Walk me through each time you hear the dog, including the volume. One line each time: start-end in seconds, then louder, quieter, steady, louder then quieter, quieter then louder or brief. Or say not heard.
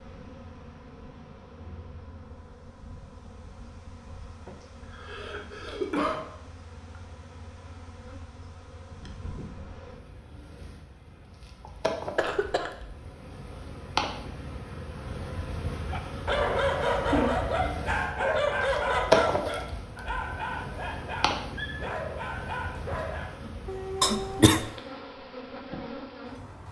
15.9-24.5 quieter.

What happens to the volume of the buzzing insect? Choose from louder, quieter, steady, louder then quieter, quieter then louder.
louder then quieter.